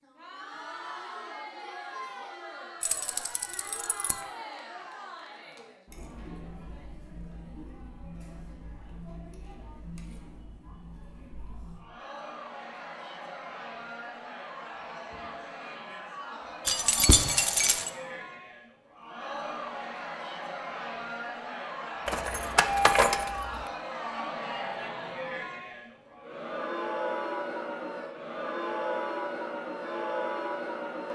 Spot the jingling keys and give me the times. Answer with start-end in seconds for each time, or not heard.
2.8-4.2, 16.6-17.9, 22.1-23.7.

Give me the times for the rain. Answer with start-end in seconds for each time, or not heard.
not heard.